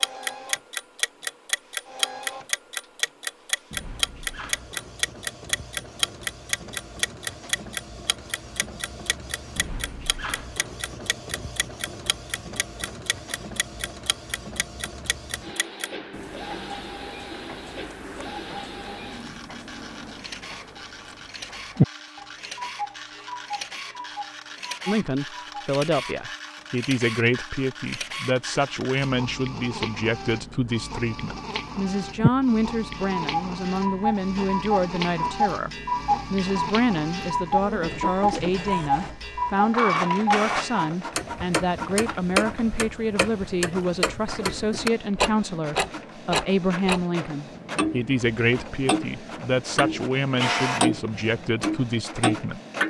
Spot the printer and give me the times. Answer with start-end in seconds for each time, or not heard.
0.0-52.8.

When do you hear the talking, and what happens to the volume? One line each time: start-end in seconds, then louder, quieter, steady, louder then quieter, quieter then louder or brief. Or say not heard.
24.9-35.7 steady
36.3-52.6 steady.